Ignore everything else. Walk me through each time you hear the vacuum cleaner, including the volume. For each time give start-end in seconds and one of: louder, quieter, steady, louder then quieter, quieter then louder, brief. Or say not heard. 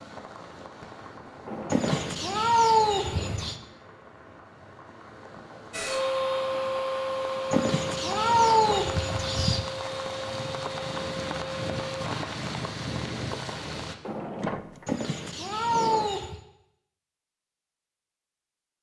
5.7-12.3 quieter.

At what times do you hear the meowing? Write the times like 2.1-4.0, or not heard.
1.7-3.5, 7.5-9.7, 14.8-16.4.